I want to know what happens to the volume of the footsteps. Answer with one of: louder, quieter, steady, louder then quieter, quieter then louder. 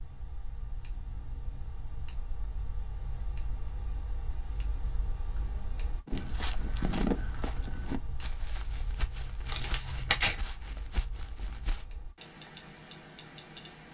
quieter.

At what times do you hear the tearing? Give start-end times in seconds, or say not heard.
9.4-10.3.